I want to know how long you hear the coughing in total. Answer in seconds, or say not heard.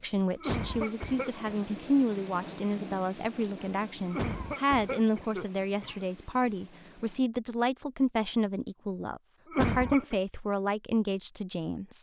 4 s.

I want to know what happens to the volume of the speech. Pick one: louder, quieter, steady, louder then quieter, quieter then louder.
steady.